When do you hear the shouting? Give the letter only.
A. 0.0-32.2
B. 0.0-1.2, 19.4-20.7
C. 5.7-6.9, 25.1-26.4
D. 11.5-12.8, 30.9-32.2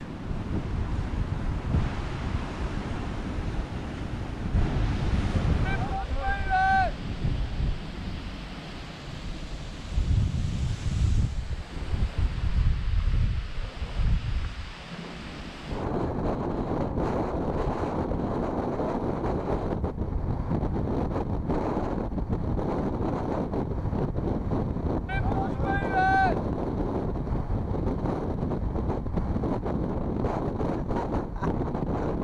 C.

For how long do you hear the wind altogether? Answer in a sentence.
The wind can be heard for 32 seconds in total.